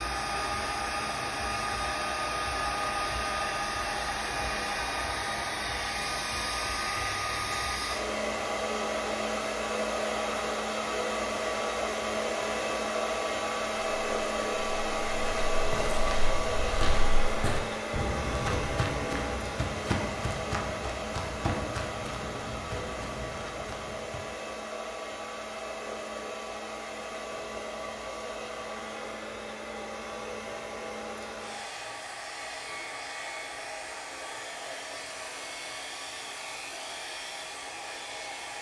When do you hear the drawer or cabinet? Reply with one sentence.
The drawer or cabinet can't be heard in this clip.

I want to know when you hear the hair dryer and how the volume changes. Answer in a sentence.
You can hear the hair dryer from 0.0 to 38.5 s, getting quieter.